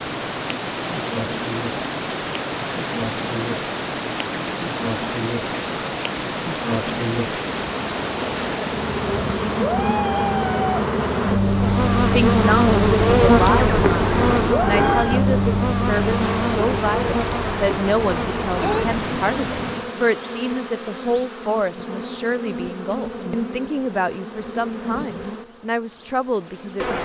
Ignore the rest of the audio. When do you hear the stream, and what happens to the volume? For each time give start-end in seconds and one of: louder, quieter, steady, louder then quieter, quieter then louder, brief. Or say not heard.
0.0-19.9 steady.